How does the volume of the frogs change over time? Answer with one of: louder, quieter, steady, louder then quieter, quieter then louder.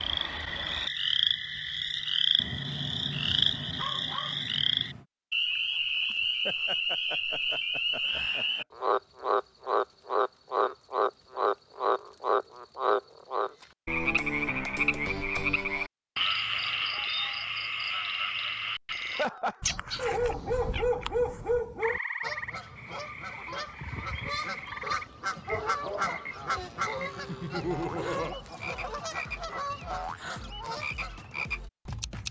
quieter.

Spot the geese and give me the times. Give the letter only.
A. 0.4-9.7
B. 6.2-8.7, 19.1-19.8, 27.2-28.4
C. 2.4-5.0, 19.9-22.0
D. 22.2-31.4
D.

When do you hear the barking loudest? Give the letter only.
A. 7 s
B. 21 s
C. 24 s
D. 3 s
B.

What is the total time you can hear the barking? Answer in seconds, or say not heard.
5 s.